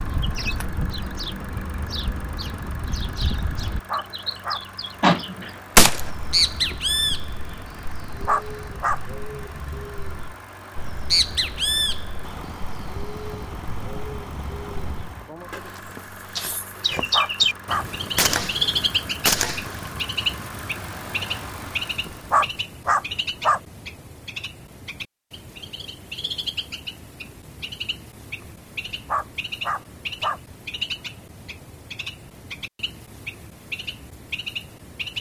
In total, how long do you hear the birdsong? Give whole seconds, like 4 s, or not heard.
35 s.